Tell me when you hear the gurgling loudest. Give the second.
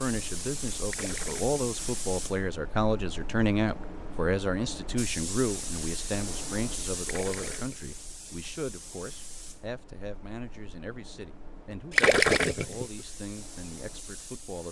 12 s.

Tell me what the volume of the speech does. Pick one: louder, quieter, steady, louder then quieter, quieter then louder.
quieter.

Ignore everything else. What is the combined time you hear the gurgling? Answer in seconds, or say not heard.
3 s.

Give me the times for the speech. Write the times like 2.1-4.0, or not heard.
0.0-14.6.